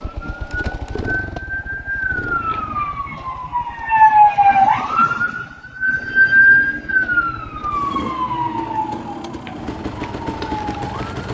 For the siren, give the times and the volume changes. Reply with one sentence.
You can hear the siren from 0.0 to 11.2 s, getting louder then quieter.